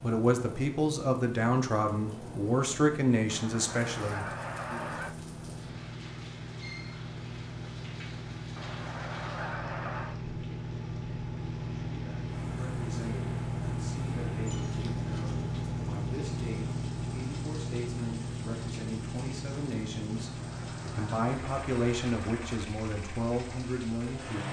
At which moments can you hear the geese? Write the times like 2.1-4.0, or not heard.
3.2-5.2, 8.6-10.2, 20.1-22.7.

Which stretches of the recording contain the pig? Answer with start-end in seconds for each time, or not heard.
not heard.